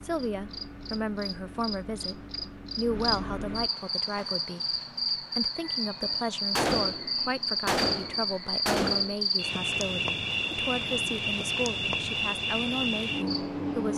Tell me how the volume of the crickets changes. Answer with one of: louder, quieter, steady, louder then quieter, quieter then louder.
louder.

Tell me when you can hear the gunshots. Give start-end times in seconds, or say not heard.
6.5-9.2.